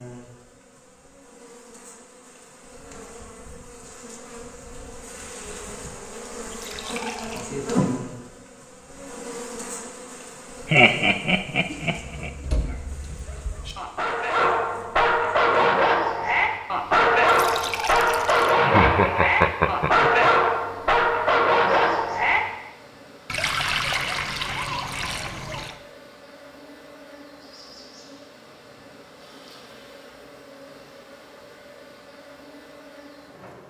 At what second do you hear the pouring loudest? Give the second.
24 s.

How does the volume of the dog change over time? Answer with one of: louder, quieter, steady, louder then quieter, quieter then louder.
louder.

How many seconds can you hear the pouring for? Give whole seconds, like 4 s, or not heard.
5 s.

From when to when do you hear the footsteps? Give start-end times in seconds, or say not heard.
not heard.